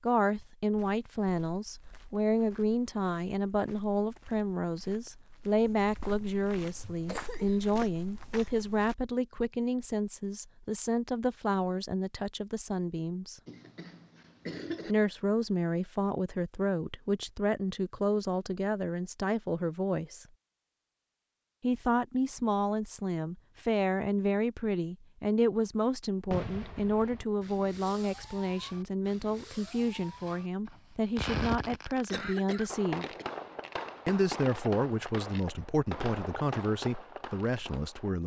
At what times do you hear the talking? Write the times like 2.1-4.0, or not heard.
0.0-13.4, 14.8-20.2, 21.6-33.0, 34.0-38.2.